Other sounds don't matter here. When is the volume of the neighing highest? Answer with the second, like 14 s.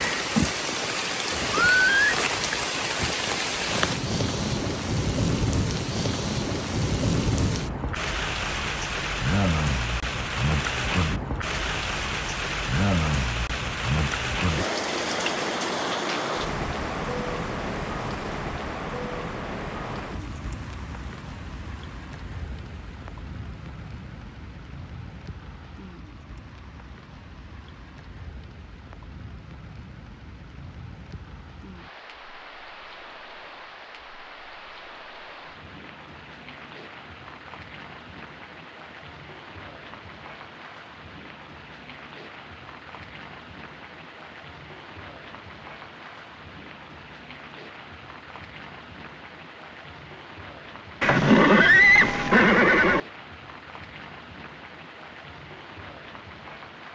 52 s.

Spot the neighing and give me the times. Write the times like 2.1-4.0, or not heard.
1.5-2.1, 51.0-53.0.